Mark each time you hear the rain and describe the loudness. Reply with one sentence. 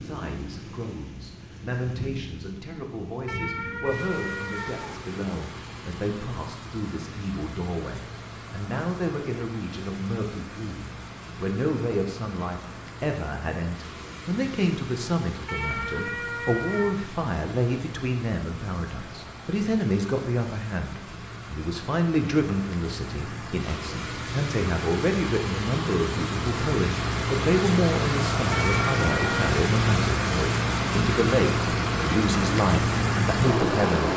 The rain can be heard from 0.0 to 34.1 s, getting louder.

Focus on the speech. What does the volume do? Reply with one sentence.
The volume of the speech goes up.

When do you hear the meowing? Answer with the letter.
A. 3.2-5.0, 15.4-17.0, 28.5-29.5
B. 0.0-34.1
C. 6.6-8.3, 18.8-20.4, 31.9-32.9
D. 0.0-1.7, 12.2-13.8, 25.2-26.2
A.